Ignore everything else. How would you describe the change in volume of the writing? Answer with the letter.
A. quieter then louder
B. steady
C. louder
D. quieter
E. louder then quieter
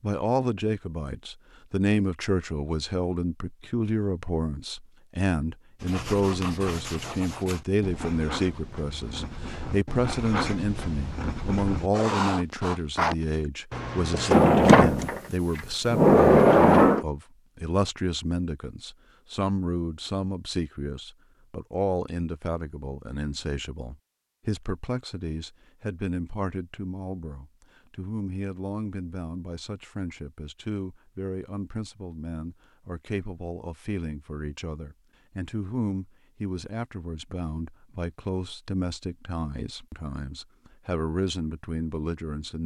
C.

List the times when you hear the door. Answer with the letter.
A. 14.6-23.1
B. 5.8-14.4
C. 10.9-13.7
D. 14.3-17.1
D.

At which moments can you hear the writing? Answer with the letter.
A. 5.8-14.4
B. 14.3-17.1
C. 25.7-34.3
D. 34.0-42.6
A.